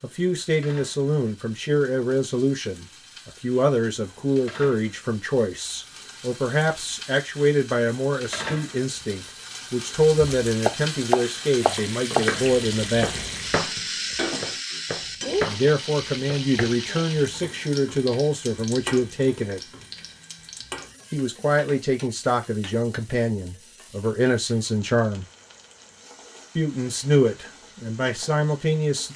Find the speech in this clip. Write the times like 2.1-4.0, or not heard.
0.0-13.2, 15.4-19.6, 21.1-25.2, 26.6-29.1.